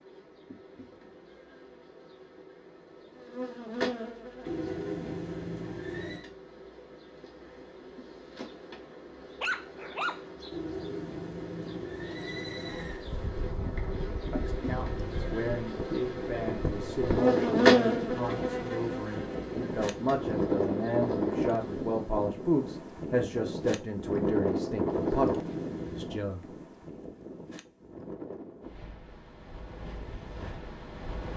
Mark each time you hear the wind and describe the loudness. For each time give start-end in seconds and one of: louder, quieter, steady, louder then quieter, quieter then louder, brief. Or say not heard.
12.9-31.3 louder then quieter.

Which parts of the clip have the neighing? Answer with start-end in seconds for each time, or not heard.
4.5-6.2, 10.5-13.1, 24.9-26.1.